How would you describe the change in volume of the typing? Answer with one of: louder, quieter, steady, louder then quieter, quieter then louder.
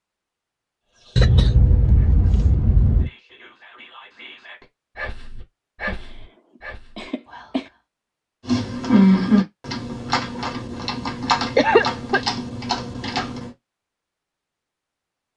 quieter.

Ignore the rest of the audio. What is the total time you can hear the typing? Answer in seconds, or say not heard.
5 s.